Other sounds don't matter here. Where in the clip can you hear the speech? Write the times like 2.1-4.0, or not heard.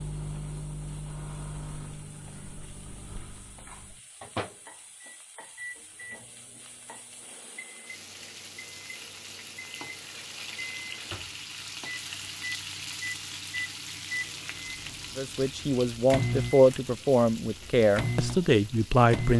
15.2-19.3.